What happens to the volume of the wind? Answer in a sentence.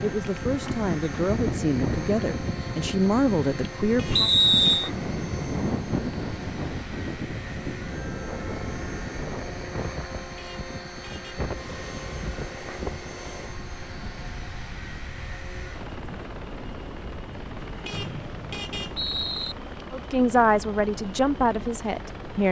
The volume of the wind goes down.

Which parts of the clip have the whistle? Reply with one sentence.
The whistle can be heard from 4.2 to 4.9 s and from 17.9 to 19.6 s.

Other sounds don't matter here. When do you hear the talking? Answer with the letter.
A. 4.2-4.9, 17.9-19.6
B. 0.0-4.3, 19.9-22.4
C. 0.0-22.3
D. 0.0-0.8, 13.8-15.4
B.